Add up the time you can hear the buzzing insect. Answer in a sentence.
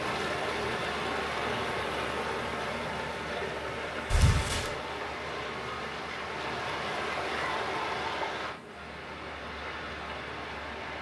The buzzing insect can be heard for 11 seconds in total.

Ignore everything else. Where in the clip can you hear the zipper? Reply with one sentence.
You can hear the zipper from 4.1 to 4.7 s.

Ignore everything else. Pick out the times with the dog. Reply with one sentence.
The dog can't be heard in this clip.